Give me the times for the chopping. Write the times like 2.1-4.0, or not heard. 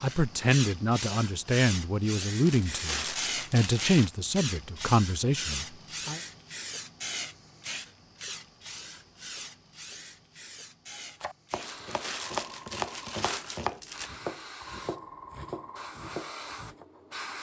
10.9-16.9.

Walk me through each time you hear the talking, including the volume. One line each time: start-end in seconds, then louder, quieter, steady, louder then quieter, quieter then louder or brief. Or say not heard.
0.0-6.2 steady.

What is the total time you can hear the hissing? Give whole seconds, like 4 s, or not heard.
17 s.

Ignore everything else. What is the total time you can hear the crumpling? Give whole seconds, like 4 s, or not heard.
4 s.